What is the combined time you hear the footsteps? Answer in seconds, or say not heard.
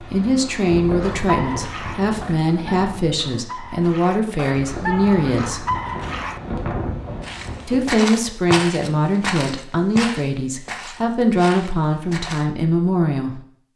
5 s.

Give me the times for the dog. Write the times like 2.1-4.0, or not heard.
1.0-6.4.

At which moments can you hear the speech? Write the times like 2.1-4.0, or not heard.
0.0-5.7, 7.7-13.4.